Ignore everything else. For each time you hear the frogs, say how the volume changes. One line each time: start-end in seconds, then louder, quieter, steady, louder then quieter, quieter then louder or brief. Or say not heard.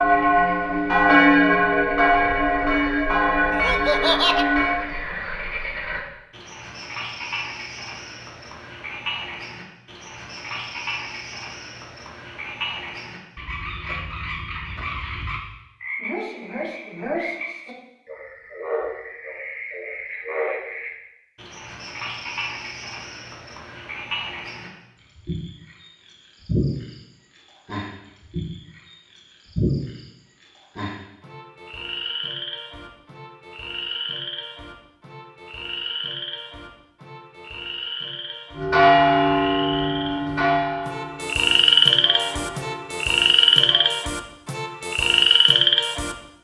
0.0-46.1 louder.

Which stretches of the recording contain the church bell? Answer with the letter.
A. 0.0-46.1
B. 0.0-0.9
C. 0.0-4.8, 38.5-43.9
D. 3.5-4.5
C.